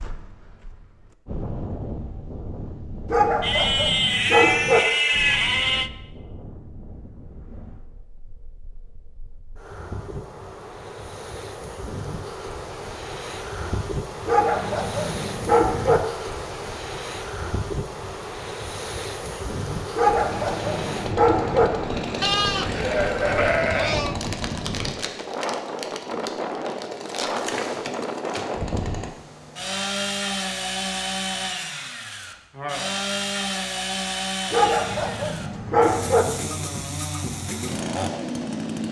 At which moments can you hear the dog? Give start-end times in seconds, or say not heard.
3.0-4.8, 14.2-16.0, 19.9-21.7, 34.5-36.2.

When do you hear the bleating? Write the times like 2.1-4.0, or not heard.
3.4-5.9, 22.2-24.1.